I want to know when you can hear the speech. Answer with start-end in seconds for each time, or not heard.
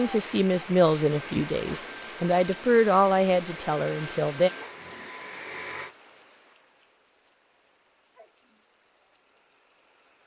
0.0-4.5.